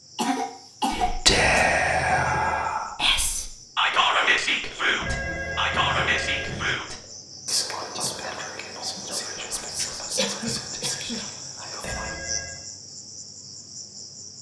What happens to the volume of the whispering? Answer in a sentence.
The loudness of the whispering goes down.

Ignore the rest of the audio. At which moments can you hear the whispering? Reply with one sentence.
You can hear the whispering from 0.9 to 12.2 s.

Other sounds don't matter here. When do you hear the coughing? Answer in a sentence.
You can hear the coughing from 0.1 to 1.7 s and from 10.2 to 11.2 s.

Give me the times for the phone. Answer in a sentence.
You can hear the phone from 1.4 to 2.8 s, from 5.0 to 6.8 s and from 11.8 to 12.7 s.